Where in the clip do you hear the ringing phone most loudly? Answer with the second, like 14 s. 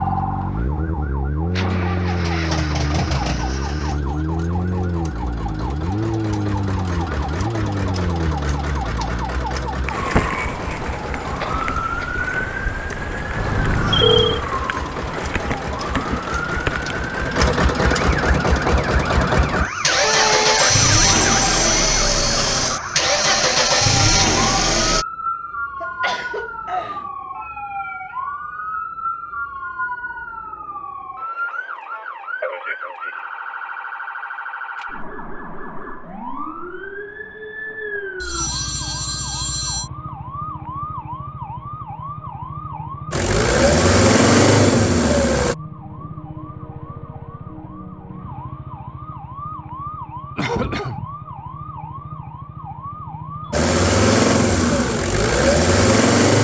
14 s.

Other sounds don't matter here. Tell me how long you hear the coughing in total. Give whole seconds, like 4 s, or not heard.
3 s.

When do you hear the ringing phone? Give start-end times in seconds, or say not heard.
13.3-14.4, 20.0-22.1, 38.2-39.9.